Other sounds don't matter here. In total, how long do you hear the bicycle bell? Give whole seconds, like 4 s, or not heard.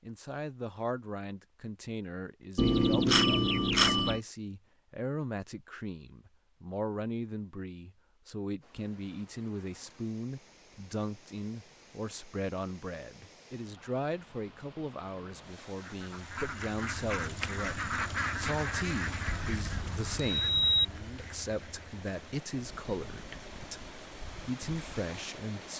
3 s.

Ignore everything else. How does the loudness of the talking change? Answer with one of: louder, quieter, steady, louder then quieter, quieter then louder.
steady.